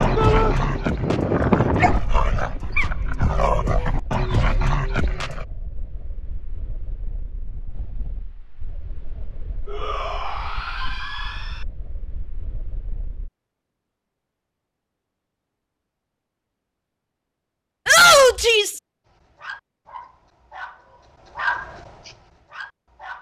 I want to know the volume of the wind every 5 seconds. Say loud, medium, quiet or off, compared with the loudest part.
loud, quiet, quiet, off, off.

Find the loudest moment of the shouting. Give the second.
18 s.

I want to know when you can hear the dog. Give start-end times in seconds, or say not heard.
0.0-5.5, 19.1-23.1.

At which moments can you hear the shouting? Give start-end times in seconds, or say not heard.
0.1-0.6, 9.7-11.7, 17.9-18.8.